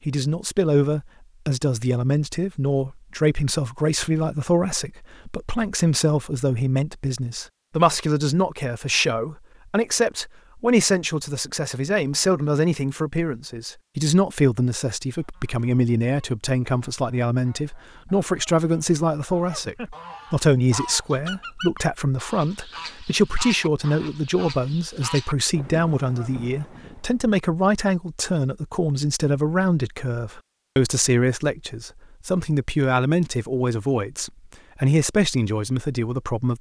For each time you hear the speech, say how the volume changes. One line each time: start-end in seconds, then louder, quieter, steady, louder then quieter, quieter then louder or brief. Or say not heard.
0.1-36.5 steady.